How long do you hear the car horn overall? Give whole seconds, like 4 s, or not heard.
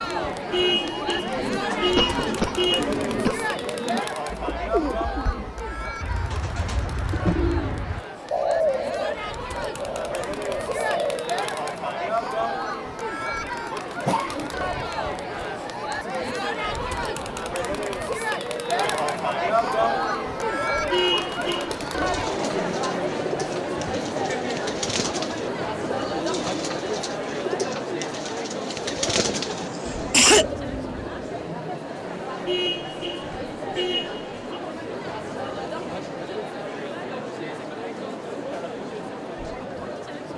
5 s.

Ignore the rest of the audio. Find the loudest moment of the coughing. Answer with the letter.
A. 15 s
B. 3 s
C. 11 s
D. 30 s
D.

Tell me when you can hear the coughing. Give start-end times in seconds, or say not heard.
1.9-3.5, 14.1-14.8, 29.5-30.4.